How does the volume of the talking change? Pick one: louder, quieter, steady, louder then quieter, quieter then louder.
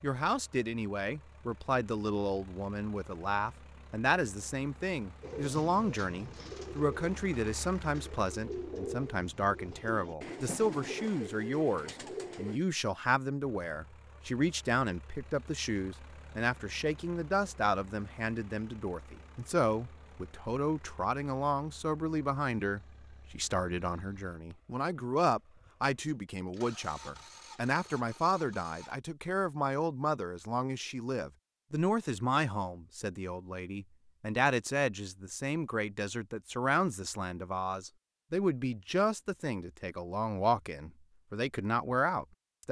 steady.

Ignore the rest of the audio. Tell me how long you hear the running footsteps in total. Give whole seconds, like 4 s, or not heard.
not heard.